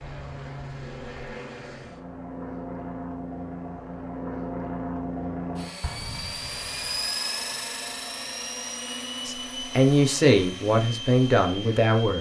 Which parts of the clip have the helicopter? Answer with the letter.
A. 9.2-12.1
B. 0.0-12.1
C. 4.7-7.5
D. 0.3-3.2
B.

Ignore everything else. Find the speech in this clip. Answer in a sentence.
The speech can be heard from 9.2 to 12.1 s.